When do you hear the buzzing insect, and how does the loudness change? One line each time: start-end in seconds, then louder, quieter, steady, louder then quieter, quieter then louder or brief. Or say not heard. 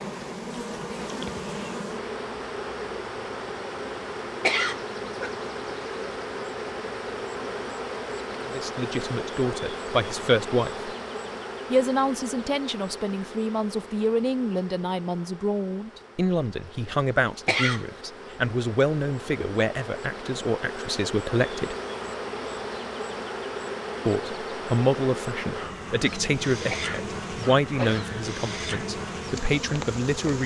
0.0-30.4 quieter then louder.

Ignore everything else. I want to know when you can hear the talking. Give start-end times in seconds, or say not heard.
8.4-10.9, 11.7-21.8, 24.1-30.4.